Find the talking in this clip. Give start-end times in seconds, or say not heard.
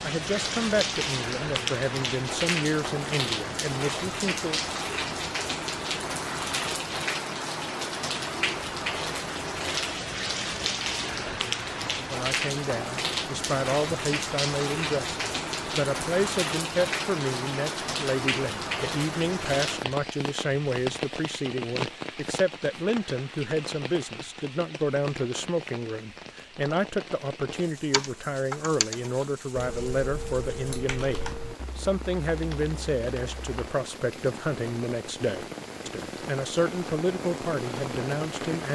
0.0-4.6, 11.9-38.7.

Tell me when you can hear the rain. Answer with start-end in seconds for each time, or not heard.
0.0-38.7.